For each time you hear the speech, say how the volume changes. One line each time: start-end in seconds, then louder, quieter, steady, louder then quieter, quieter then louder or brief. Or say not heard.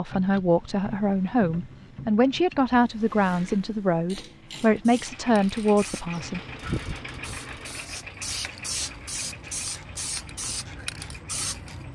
0.0-6.4 steady.